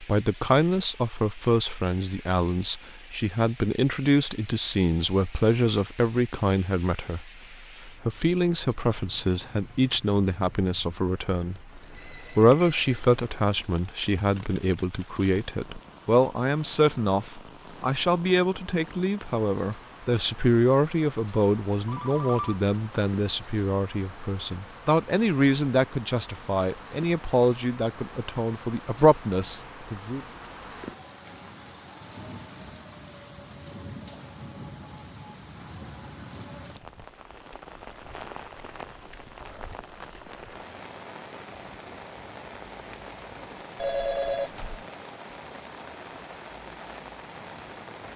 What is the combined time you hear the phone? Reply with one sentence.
The phone can be heard for 3 seconds in total.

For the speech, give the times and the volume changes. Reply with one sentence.
The speech can be heard from 0.0 to 30.2 s, at a steady volume.